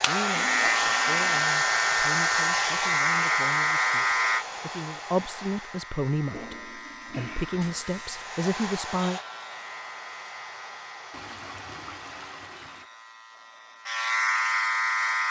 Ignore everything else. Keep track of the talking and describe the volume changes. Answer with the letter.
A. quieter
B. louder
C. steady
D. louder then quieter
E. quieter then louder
B.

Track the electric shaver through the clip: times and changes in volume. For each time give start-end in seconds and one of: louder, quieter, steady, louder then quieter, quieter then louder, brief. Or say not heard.
0.0-15.2 quieter then louder.